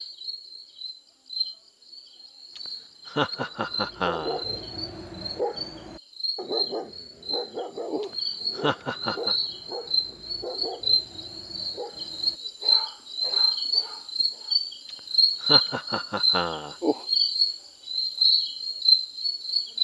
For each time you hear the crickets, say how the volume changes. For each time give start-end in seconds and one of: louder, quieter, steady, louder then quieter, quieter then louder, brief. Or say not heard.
0.0-19.7 louder.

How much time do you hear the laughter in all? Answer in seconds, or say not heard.
5 s.